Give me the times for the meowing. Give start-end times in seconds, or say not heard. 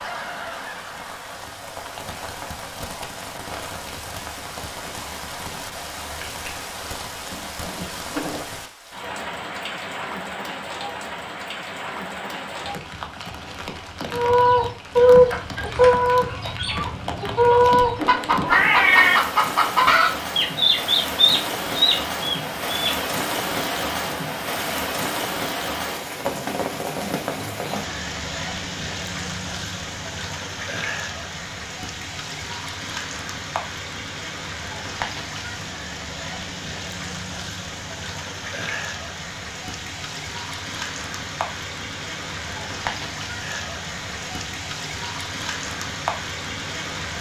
17.9-19.2.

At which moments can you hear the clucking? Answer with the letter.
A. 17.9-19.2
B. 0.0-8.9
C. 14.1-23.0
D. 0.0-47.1
C.